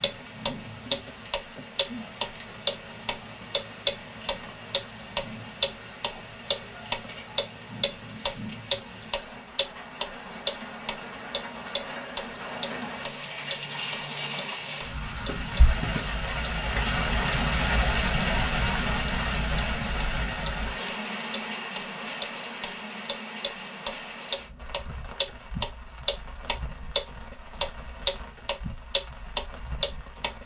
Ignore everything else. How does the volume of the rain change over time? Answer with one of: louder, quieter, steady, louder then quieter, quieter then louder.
louder then quieter.